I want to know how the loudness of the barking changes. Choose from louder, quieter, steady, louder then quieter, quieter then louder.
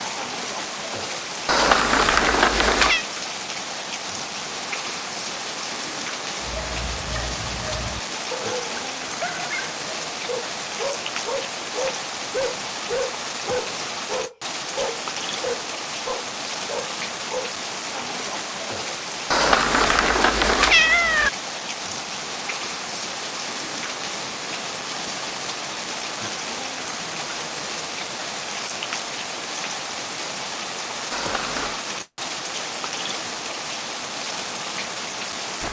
louder.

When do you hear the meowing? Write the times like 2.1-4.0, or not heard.
1.4-3.0, 19.3-21.3, 31.1-31.8.